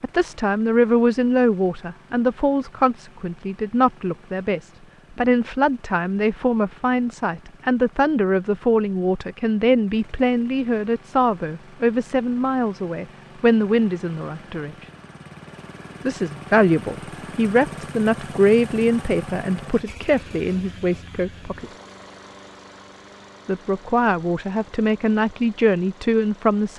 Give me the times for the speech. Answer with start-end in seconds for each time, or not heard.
0.0-14.8, 16.1-21.7, 23.4-26.7.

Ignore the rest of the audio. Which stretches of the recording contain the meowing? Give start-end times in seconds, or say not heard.
not heard.